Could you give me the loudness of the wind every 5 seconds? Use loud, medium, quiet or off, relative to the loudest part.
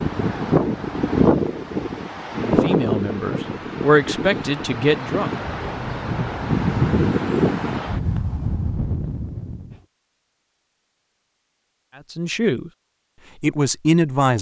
loud, loud, off.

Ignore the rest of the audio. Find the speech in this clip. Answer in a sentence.
You can hear the speech from 2.4 to 5.3 s, from 12.1 to 12.7 s and from 13.4 to 14.3 s.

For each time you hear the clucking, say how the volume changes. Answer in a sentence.
The clucking can't be heard in this clip.